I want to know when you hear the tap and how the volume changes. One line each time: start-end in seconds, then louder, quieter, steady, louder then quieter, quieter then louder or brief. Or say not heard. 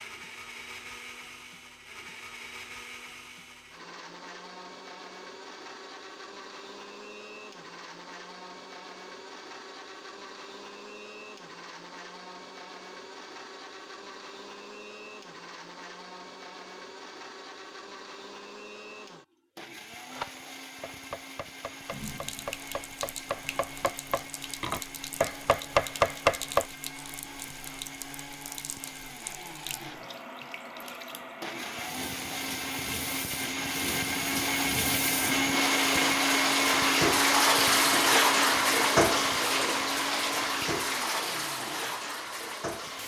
21.8-43.0 louder.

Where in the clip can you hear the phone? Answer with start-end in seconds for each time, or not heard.
not heard.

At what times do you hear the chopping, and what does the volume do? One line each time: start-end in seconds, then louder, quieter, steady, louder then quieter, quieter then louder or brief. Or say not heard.
20.1-26.6 louder.